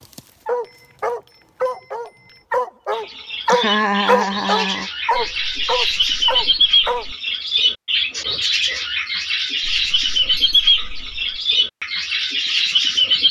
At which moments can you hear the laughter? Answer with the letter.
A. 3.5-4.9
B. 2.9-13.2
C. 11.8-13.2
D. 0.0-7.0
A.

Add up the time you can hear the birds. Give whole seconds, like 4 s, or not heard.
10 s.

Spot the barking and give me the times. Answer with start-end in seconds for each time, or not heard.
0.0-7.0.